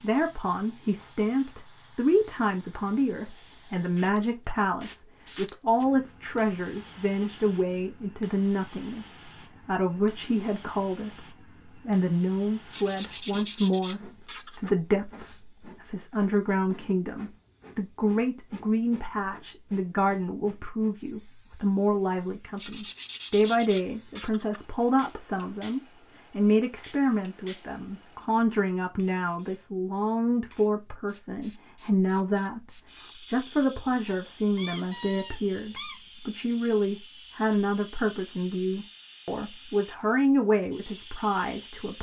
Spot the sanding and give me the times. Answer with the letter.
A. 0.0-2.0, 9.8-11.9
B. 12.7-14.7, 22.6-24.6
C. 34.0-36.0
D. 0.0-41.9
B.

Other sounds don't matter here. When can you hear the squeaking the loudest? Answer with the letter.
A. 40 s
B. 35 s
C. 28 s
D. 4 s
B.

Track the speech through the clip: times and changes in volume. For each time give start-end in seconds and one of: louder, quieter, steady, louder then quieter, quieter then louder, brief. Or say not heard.
0.0-41.9 steady.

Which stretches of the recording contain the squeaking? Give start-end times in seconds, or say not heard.
34.0-36.0.